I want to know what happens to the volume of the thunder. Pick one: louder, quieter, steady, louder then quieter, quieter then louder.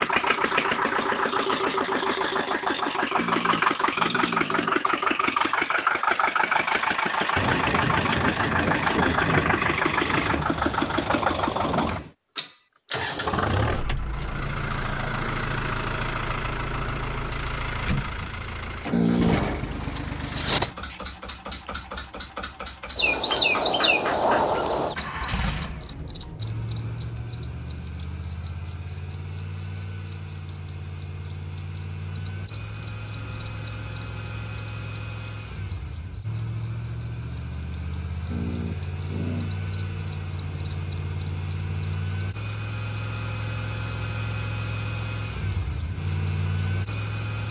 quieter.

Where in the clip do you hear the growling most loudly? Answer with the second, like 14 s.
19 s.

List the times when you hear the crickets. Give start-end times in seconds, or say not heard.
19.9-47.4.